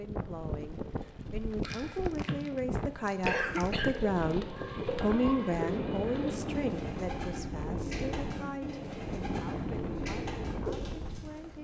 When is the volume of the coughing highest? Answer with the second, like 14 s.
3 s.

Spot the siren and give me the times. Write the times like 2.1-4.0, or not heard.
not heard.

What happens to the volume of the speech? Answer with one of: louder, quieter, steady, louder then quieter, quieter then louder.
louder then quieter.